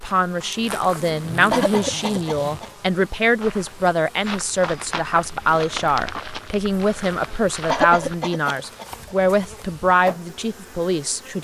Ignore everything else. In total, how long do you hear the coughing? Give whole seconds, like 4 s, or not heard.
3 s.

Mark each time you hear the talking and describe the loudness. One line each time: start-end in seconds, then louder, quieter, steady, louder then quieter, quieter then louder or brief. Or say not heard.
0.0-11.3 steady.